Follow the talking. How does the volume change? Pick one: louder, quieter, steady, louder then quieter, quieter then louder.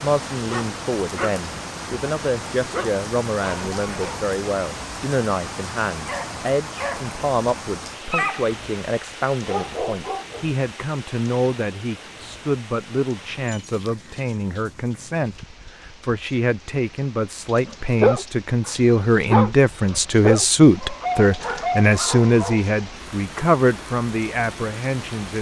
louder.